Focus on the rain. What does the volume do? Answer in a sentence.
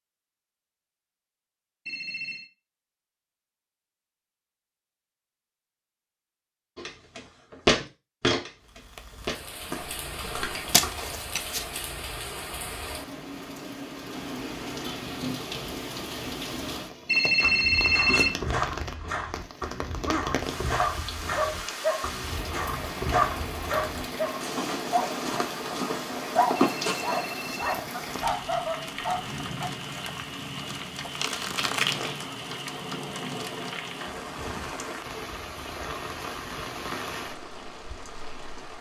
The volume of the rain stays about the same.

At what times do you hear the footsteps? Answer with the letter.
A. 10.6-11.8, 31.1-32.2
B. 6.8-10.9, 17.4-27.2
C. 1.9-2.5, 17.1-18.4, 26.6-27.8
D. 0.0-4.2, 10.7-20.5
B.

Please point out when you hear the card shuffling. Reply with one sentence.
The card shuffling can be heard from 10.6 to 11.8 s and from 31.1 to 32.2 s.